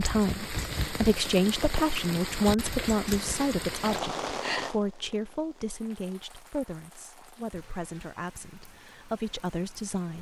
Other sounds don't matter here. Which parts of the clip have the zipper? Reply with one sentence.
You can't hear the zipper here.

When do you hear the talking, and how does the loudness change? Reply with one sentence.
You can hear the talking from 0.0 to 10.1 s, getting quieter.